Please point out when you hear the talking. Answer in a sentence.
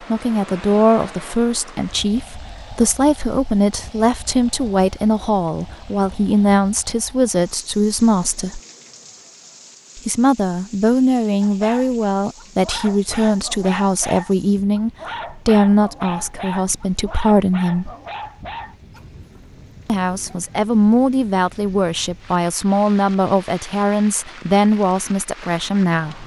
The talking can be heard from 0.1 to 8.6 s, from 9.9 to 17.9 s and from 19.9 to 26.2 s.